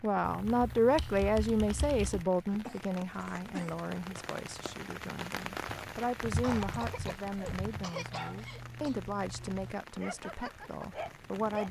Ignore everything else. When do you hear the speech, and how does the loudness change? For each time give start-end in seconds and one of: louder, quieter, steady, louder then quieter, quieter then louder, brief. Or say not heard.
0.0-11.6 quieter.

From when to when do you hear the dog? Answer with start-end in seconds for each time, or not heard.
7.9-11.6.